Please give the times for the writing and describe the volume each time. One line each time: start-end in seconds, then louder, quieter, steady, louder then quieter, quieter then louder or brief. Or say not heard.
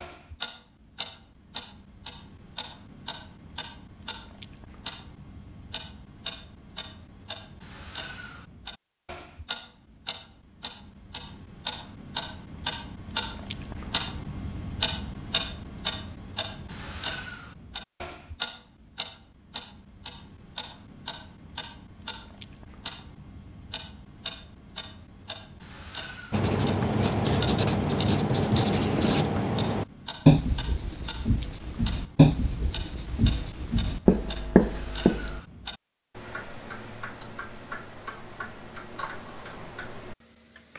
26.3-35.4 steady.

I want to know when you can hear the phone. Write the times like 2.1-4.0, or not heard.
not heard.